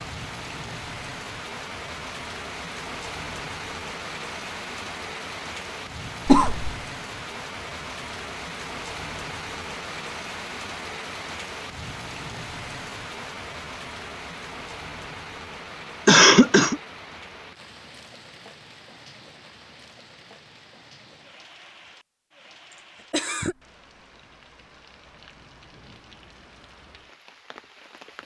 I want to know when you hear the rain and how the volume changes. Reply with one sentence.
The rain can be heard from 0.0 to 28.2 s, getting quieter.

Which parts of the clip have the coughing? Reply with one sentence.
The coughing can be heard from 6.2 to 6.8 s, from 16.1 to 16.8 s and from 23.1 to 23.6 s.